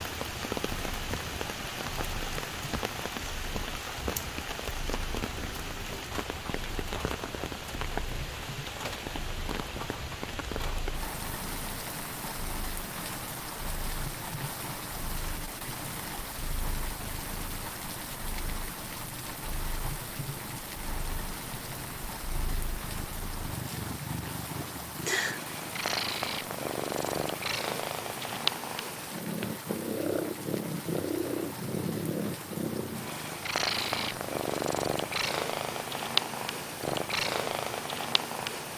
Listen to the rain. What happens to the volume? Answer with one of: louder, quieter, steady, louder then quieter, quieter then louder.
quieter.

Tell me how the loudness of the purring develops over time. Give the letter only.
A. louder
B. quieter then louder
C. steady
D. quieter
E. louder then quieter
A.